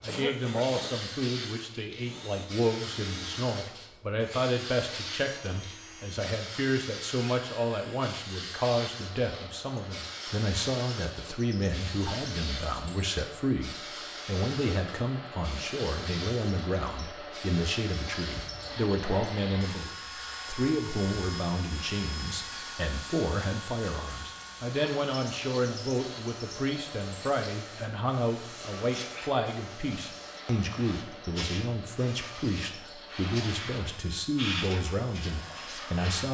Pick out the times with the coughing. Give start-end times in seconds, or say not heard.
0.1-0.9.